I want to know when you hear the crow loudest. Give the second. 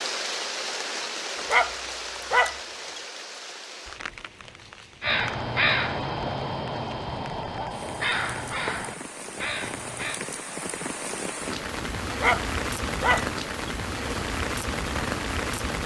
6 s.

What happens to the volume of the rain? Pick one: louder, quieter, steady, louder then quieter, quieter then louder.
quieter then louder.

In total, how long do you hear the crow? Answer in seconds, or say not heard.
5 s.